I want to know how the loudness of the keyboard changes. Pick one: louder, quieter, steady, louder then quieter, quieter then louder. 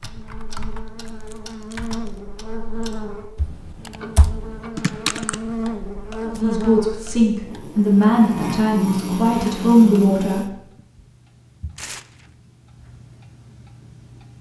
quieter then louder.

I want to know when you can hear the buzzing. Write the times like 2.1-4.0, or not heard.
0.0-10.5.